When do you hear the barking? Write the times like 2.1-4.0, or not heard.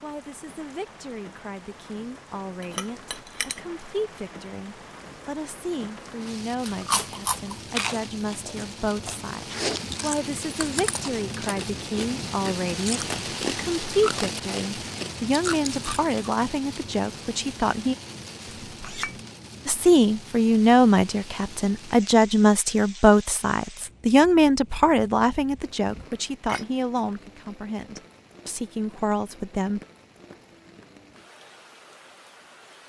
not heard.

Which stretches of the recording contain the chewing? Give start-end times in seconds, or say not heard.
6.5-16.4.